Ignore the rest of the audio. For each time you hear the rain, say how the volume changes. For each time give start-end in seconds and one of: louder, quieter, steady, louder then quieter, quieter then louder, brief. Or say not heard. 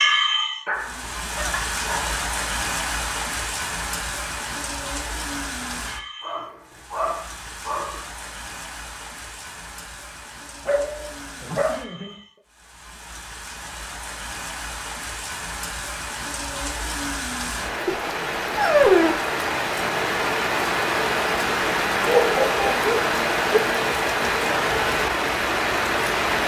0.0-26.4 quieter then louder.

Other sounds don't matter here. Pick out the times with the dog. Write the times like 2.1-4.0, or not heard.
0.7-2.2, 6.2-8.0, 10.7-12.2, 17.9-19.3, 22.1-23.6.